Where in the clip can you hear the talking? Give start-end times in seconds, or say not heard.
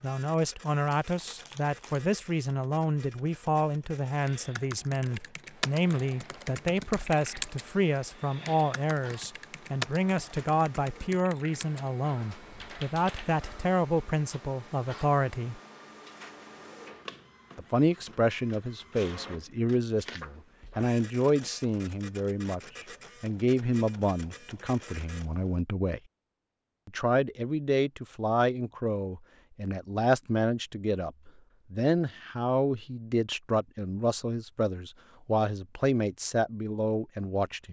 0.0-15.6, 17.6-26.0, 26.9-37.6.